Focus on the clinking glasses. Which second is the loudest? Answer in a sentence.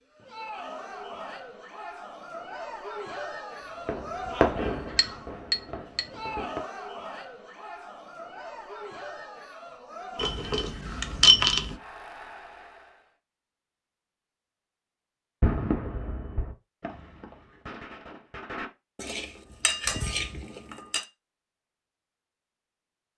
The loudest moment of the clinking glasses is at 11 seconds.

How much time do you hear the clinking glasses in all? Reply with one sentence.
You can hear the clinking glasses for 5 seconds altogether.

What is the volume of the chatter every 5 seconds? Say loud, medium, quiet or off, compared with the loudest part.
loud, loud, medium, off, off.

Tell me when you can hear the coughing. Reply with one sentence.
You can't hear the coughing here.